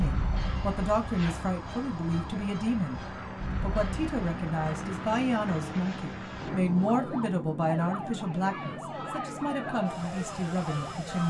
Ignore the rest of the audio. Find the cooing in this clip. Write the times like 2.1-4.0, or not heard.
not heard.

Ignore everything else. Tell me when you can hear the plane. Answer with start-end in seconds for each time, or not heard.
0.0-11.2.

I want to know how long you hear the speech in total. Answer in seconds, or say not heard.
11 s.